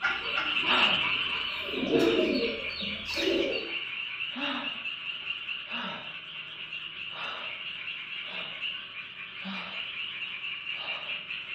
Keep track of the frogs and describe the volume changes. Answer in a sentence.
The volume of the frogs goes down.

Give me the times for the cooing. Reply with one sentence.
The cooing can be heard from 0.0 to 3.6 s.